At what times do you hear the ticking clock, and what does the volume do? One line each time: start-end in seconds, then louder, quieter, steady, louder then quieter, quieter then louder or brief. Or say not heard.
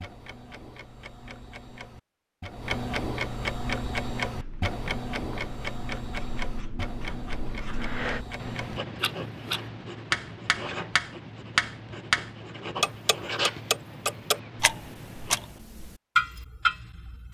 0.0-17.2 louder.